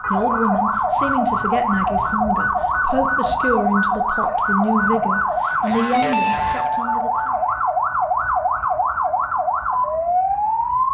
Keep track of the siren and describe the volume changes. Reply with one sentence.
The loudness of the siren stays about the same.